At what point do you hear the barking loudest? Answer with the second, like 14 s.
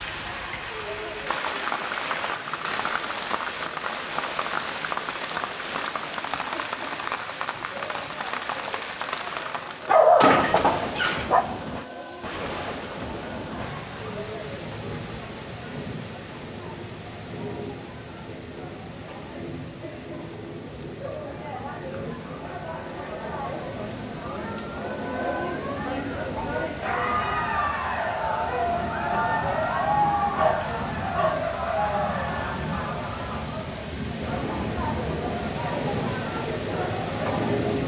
10 s.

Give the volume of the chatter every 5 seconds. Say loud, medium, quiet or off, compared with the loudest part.
quiet, quiet, quiet, quiet, medium, loud, loud, loud.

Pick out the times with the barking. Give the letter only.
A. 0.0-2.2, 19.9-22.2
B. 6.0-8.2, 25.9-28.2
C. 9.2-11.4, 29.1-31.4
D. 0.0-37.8
C.